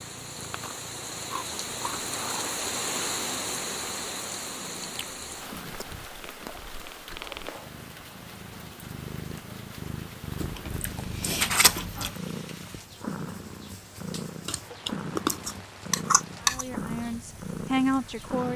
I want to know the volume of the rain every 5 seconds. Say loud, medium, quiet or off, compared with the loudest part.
loud, medium, quiet, quiet.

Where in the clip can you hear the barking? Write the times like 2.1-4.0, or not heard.
not heard.